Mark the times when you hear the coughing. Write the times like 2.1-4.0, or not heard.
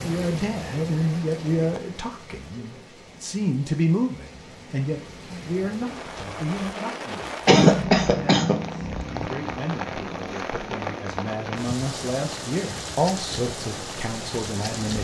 7.5-8.6.